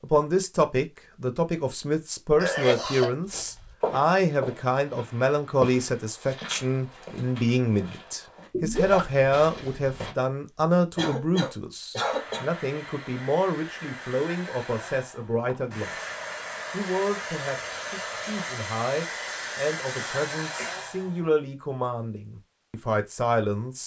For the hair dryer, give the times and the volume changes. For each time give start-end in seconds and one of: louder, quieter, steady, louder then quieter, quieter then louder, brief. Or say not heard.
12.0-21.3 louder.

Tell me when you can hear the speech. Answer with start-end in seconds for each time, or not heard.
0.0-23.8.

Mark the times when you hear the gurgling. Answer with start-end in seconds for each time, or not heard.
8.5-9.2.